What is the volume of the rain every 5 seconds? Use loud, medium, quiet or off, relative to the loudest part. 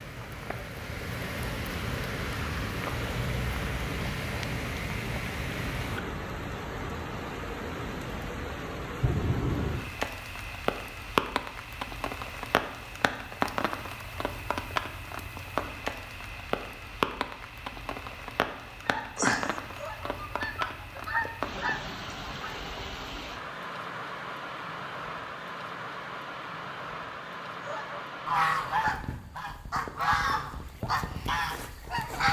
loud, loud, loud, loud, medium, medium, medium.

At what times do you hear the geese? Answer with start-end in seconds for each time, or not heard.
18.8-22.6, 27.6-32.2.